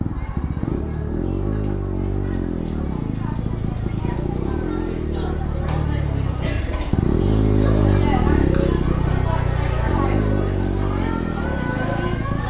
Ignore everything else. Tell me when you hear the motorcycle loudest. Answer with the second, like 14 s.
8 s.